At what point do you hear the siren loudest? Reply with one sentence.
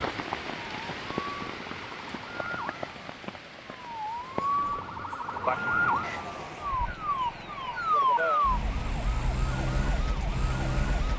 The volume of the siren peaks at 8 seconds.